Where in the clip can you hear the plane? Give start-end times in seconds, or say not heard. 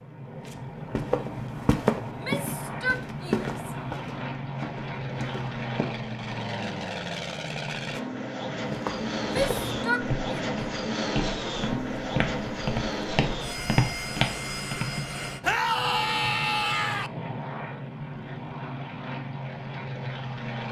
0.0-20.6.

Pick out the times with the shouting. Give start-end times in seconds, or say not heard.
2.1-3.7, 9.3-10.6, 15.4-17.1.